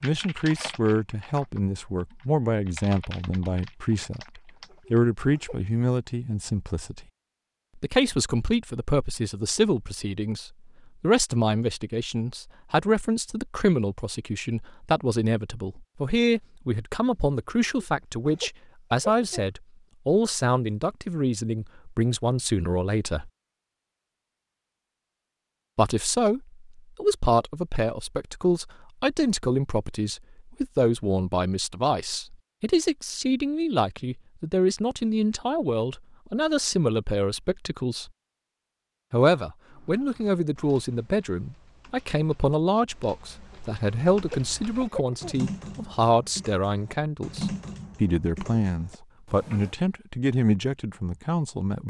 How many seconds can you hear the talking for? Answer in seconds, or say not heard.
48 s.